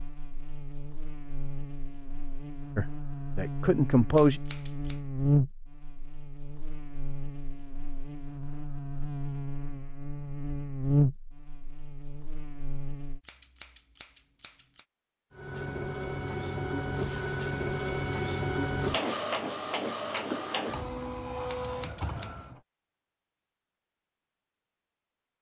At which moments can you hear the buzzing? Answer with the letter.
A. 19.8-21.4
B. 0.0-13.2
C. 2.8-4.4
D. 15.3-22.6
B.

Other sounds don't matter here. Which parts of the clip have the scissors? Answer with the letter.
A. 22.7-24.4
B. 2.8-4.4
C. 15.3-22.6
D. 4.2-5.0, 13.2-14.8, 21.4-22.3
D.